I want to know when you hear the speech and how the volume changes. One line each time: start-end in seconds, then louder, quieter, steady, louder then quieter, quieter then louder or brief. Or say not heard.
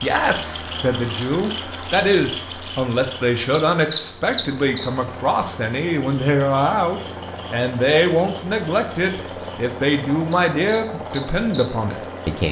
0.0-12.4 steady.